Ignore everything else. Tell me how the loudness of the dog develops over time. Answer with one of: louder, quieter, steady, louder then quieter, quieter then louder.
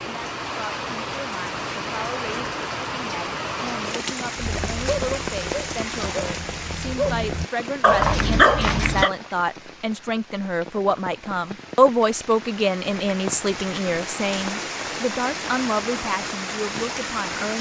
louder.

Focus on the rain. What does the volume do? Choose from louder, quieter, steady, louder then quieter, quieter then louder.
quieter then louder.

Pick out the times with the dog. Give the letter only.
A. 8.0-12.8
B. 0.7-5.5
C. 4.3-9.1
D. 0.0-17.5
C.